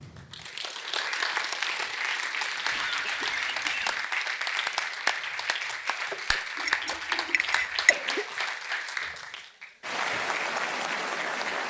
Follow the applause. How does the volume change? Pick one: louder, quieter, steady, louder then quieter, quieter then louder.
steady.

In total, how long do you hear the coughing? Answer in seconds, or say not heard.
3 s.